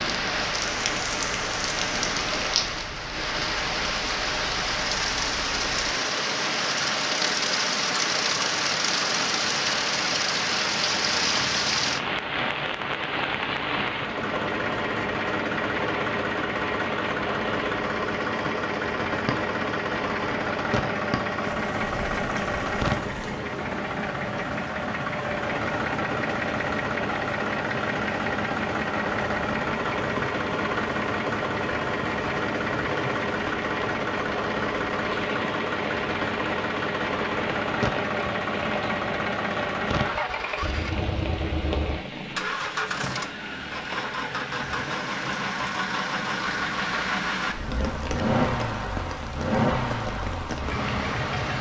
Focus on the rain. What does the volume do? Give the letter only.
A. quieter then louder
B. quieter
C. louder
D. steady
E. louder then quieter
B.